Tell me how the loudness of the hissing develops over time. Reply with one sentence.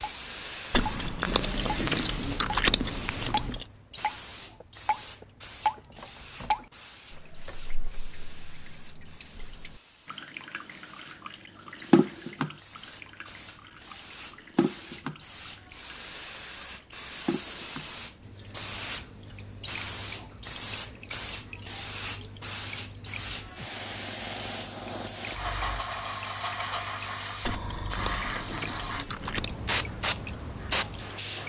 The loudness of the hissing goes down, then up.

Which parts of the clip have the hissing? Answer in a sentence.
The hissing can be heard from 0.0 to 31.4 s.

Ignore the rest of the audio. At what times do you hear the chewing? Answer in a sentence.
You can hear the chewing from 0.7 to 3.6 s and from 27.4 to 29.6 s.